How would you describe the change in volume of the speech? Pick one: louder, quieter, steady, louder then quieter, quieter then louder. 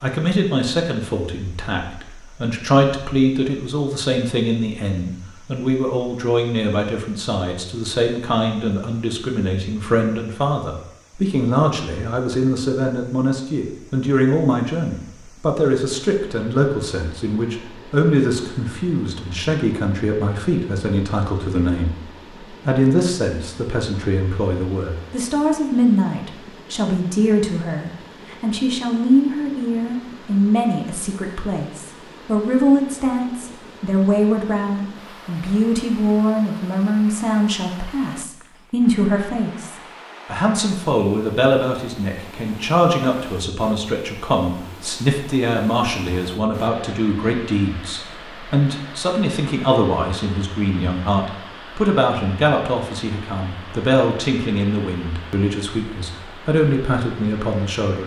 steady.